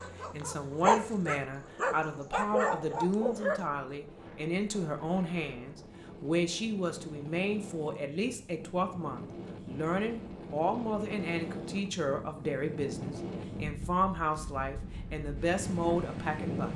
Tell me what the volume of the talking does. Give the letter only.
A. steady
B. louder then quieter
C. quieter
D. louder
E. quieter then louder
A.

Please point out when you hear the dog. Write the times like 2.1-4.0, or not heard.
0.0-3.6.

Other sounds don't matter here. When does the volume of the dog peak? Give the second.
1 s.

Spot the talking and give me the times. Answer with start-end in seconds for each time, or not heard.
0.3-16.7.